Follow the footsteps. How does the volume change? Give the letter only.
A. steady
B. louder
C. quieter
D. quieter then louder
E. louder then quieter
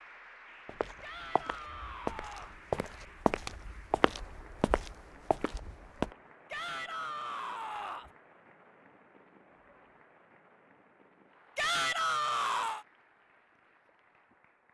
E.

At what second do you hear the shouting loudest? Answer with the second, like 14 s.
12 s.